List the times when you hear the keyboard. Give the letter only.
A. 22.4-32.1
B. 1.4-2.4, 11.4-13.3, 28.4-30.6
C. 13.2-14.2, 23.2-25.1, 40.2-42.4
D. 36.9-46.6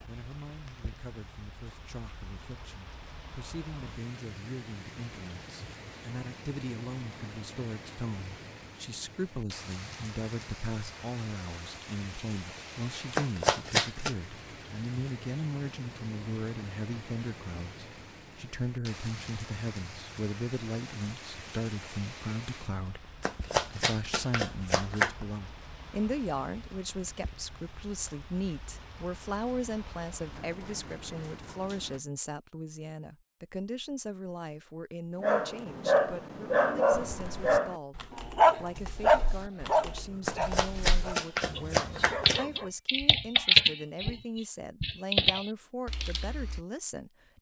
D.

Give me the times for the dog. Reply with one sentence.
You can hear the dog from 35.2 to 42.7 s.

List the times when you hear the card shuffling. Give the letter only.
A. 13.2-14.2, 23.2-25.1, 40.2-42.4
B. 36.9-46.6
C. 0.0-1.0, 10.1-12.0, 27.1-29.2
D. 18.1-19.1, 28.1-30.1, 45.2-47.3
A.